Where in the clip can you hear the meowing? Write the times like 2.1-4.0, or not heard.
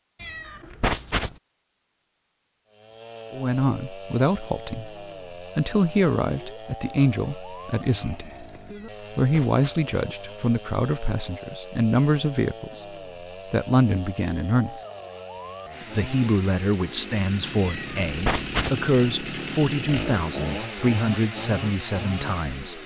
0.2-1.4, 8.7-9.7, 17.6-18.8.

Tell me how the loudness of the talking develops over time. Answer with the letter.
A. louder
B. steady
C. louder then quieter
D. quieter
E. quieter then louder
B.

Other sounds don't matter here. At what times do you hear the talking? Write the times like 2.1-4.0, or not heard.
3.3-8.4, 9.2-14.8, 15.8-22.8.